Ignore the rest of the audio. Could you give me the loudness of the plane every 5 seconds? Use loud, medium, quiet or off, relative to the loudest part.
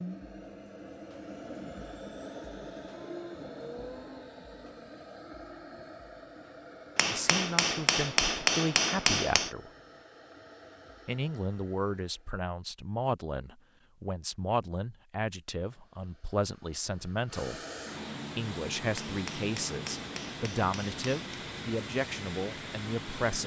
loud, medium, quiet, loud, loud.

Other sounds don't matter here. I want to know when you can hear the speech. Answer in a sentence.
The speech can be heard from 7.1 to 9.7 s, from 11.1 to 17.6 s and from 18.4 to 23.4 s.